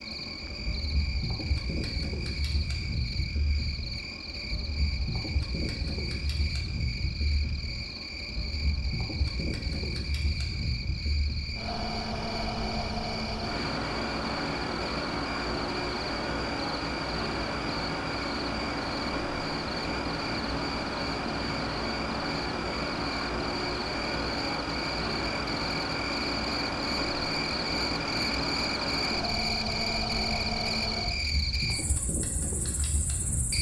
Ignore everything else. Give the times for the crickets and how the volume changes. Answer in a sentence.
The crickets can be heard from 0.0 to 33.5 s, getting louder.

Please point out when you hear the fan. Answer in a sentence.
The fan can be heard from 0.0 to 33.5 s.